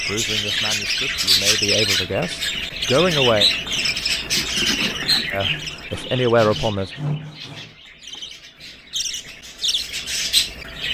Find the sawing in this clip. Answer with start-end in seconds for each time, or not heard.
5.0-7.8.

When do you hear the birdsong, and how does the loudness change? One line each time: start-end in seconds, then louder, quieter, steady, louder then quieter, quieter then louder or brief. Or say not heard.
0.0-10.9 quieter then louder.